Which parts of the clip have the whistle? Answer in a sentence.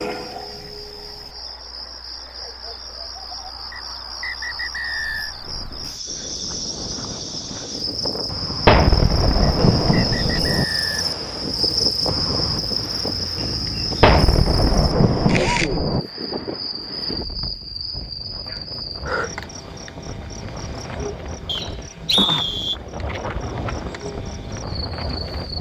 The whistle can be heard from 3.7 to 5.3 s, from 9.4 to 11.0 s and from 21.4 to 22.8 s.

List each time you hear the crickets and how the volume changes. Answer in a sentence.
The crickets can be heard from 0.0 to 25.5 s, getting louder then quieter.